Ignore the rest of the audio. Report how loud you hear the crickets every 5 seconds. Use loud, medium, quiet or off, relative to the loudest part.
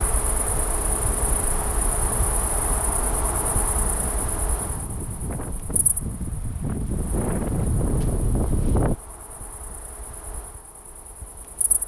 loud, quiet, quiet.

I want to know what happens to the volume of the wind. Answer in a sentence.
The volume of the wind goes up.